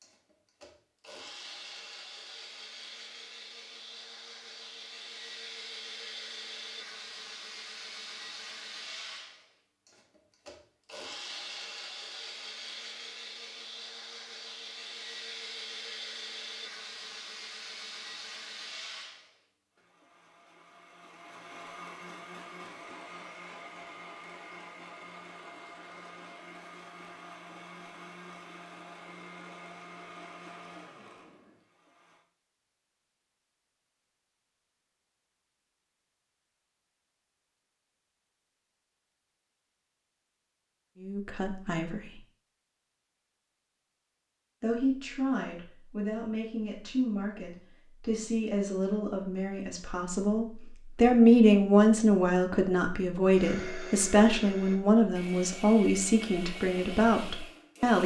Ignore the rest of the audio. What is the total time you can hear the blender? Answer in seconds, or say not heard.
37 s.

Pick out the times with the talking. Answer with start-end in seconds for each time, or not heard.
41.0-42.0, 44.6-58.0.